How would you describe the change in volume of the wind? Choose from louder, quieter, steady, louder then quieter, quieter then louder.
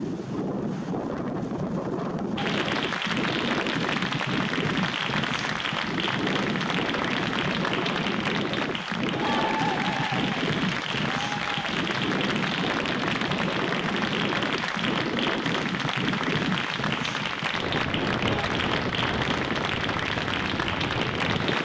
steady.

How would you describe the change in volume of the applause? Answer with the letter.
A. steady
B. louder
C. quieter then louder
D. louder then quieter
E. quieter
A.